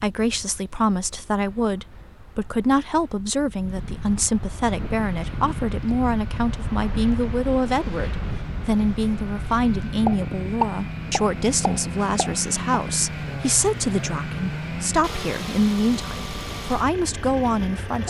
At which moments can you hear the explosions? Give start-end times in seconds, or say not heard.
10.1-12.8.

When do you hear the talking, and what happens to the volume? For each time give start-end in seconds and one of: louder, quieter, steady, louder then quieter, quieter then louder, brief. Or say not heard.
0.0-18.0 steady.